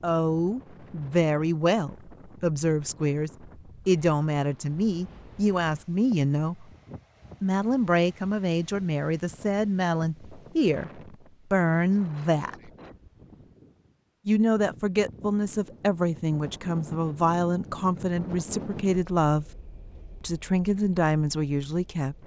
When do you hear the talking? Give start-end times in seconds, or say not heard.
0.0-6.7, 7.4-12.7, 14.2-19.4, 20.2-22.1.